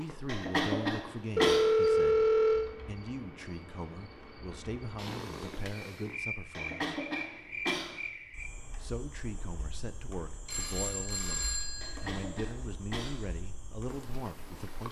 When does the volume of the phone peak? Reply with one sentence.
The loudest moment of the phone is at 2 seconds.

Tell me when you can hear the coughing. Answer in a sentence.
The coughing can be heard from 0.2 to 1.7 s, from 6.5 to 8.0 s and from 11.8 to 13.2 s.